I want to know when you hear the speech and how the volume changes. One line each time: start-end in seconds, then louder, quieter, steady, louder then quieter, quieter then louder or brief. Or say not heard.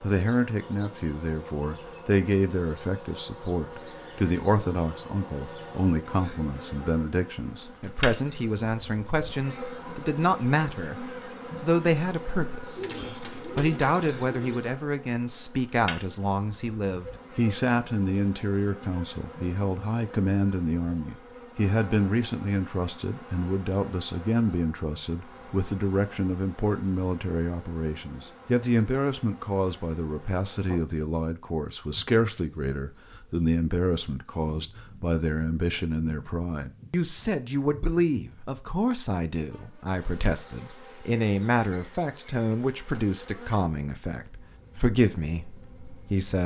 0.0-46.4 steady.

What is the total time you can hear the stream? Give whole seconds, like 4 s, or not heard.
not heard.